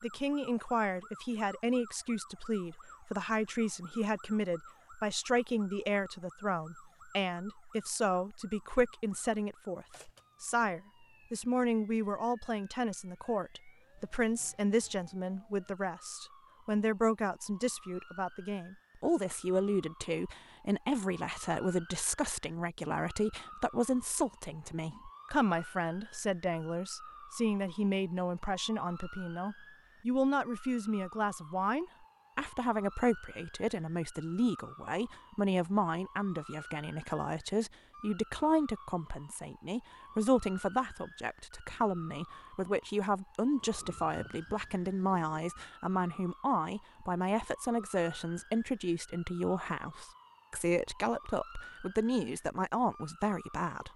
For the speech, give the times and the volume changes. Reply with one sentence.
You can hear the speech from 0.0 to 53.9 s, at a steady volume.